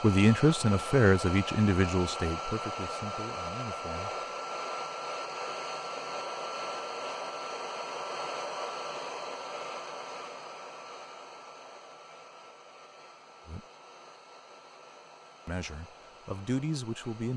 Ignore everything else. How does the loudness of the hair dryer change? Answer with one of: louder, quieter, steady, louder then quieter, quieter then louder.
quieter.